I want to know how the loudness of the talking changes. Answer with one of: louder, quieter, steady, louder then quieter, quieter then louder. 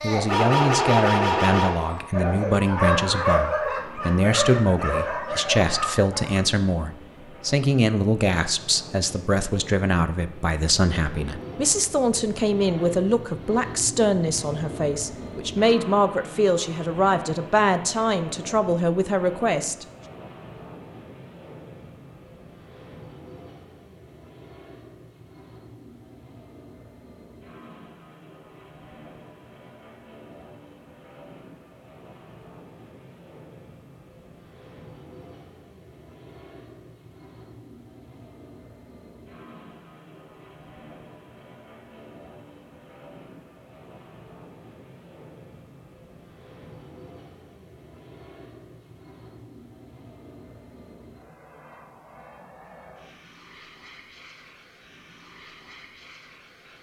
steady.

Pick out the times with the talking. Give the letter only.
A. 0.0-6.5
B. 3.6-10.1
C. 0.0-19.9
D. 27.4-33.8
C.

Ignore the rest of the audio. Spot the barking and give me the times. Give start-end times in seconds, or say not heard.
0.0-6.5.